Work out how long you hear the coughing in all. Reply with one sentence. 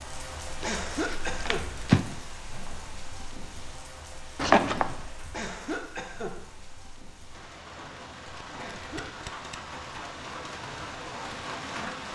The coughing can be heard for 3 seconds in total.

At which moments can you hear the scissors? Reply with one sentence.
You can hear the scissors from 0.6 to 2.0 s, from 4.3 to 5.0 s and from 8.3 to 9.6 s.